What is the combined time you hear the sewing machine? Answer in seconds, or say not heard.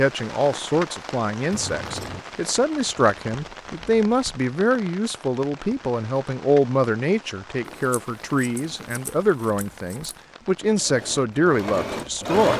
2 s.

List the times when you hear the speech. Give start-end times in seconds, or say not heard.
0.0-12.5.